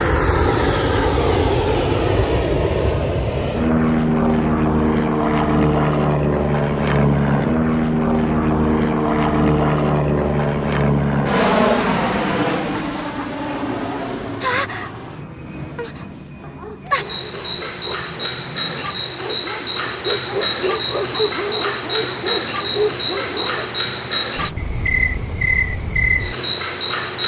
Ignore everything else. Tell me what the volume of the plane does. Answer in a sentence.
The loudness of the plane goes down.